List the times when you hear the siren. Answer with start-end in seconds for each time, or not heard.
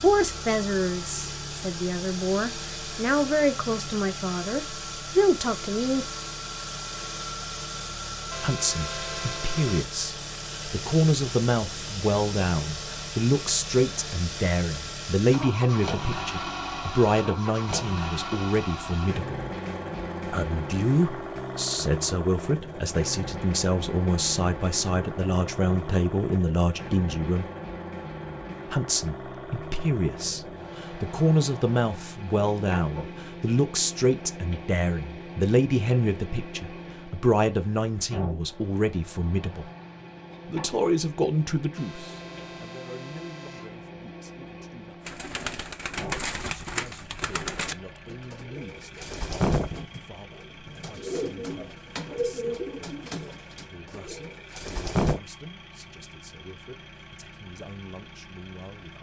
not heard.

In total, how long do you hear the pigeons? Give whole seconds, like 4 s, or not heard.
10 s.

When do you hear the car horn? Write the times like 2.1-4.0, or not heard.
8.3-9.8, 41.8-43.8.